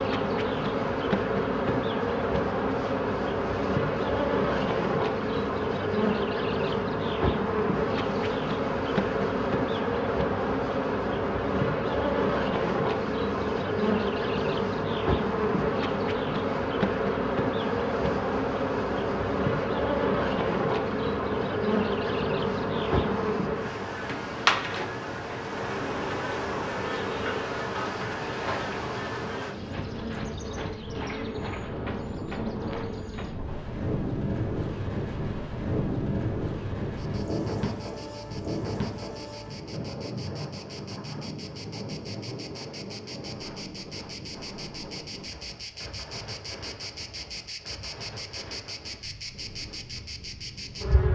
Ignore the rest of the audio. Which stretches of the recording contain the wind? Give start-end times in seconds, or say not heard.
0.1-51.0.